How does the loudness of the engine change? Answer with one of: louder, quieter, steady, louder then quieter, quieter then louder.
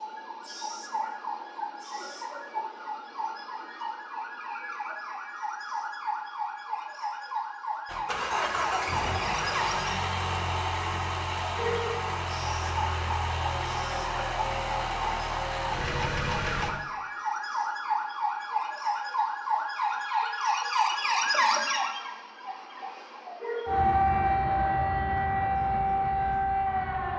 steady.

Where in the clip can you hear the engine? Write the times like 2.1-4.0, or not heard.
7.8-16.7.